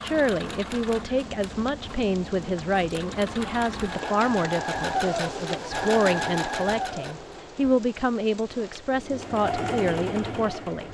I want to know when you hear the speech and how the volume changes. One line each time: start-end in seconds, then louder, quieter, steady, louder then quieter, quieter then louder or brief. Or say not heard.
0.0-10.8 steady.